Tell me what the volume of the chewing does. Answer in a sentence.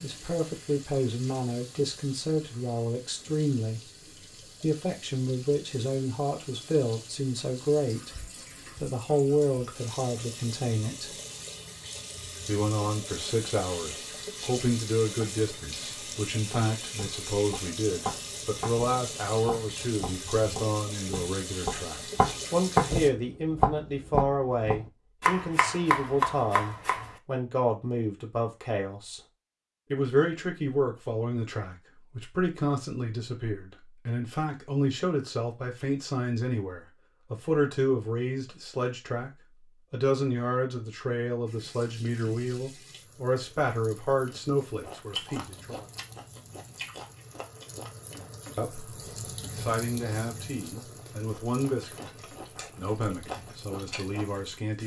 The volume of the chewing goes down, then up.